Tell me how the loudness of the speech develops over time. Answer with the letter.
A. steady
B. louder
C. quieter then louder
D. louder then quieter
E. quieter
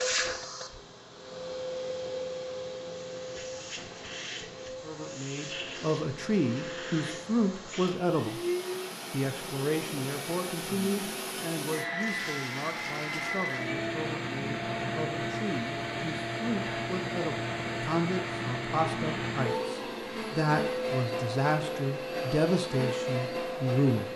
C.